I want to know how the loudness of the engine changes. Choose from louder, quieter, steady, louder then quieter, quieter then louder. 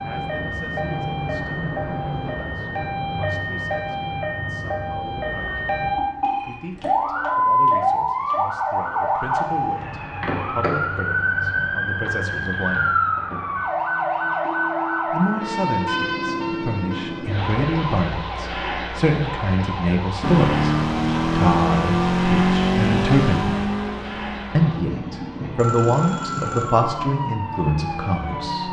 quieter.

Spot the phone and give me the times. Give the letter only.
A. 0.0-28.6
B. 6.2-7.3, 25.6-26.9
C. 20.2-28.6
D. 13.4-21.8
B.